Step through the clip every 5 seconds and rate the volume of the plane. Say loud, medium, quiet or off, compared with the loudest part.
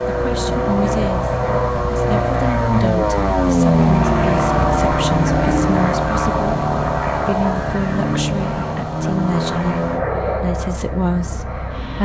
loud, loud, medium.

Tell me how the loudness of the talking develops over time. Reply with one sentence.
The volume of the talking stays about the same.